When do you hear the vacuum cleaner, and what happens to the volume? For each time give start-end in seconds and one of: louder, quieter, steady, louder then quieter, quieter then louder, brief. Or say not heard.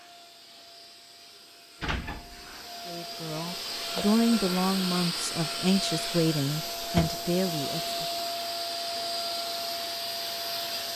0.0-10.9 louder.